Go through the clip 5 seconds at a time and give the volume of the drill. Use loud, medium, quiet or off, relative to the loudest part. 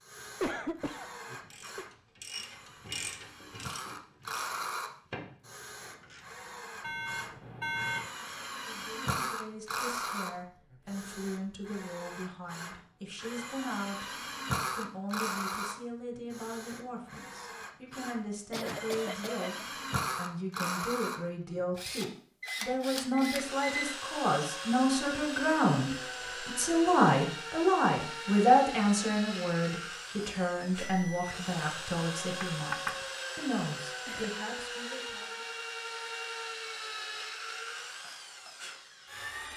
medium, loud, loud, loud, loud, loud, loud, loud.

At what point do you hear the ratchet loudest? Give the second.
3 s.